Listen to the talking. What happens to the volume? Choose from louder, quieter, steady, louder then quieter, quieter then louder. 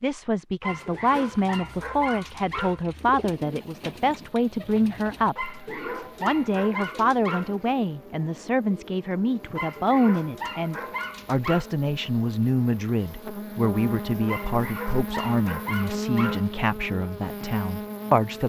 steady.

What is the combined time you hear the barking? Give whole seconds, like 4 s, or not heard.
9 s.